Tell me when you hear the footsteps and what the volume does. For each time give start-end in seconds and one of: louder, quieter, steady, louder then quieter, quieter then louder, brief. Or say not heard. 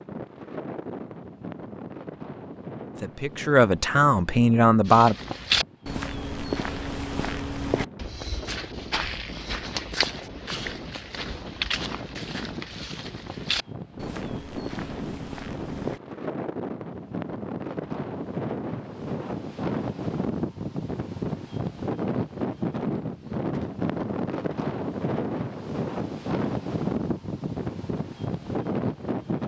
4.8-16.0 quieter.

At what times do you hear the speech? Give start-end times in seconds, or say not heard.
3.0-5.2.